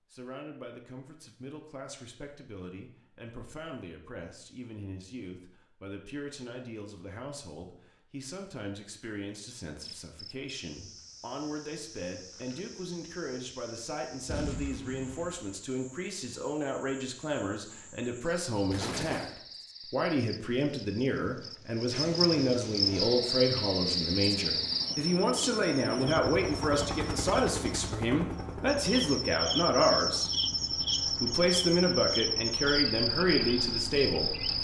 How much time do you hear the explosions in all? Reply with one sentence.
The explosions can be heard for 2 seconds in total.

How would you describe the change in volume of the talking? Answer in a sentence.
The loudness of the talking goes up.